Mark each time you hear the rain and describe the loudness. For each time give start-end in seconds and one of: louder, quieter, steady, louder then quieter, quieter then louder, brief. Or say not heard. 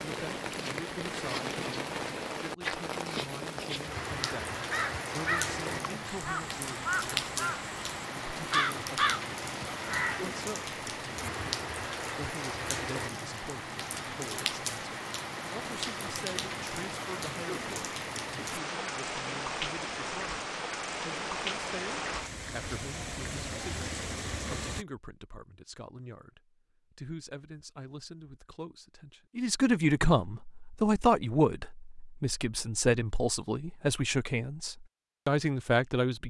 0.0-24.9 steady.